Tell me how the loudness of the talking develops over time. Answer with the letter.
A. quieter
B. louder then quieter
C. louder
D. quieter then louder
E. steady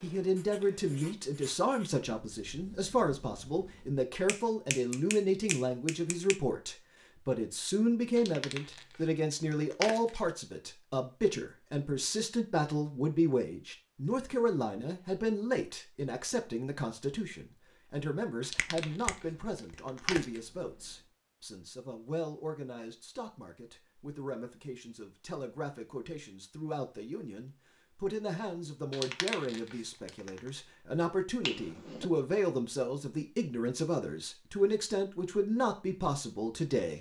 D.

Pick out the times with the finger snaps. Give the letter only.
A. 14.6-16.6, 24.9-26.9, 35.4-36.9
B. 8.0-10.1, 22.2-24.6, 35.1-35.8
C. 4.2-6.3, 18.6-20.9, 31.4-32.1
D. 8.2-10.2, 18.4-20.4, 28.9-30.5
C.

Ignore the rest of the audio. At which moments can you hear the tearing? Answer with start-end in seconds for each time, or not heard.
8.2-10.2, 18.4-20.4, 28.9-30.5.